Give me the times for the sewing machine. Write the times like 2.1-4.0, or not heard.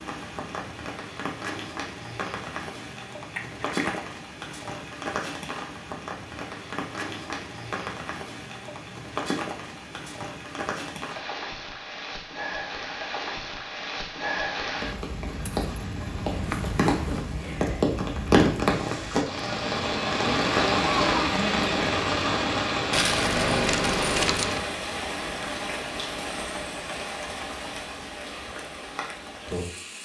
not heard.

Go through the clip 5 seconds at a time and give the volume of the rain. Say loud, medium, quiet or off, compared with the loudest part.
medium, medium, medium, loud, loud, medium.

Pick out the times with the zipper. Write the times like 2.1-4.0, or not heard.
16.3-17.6.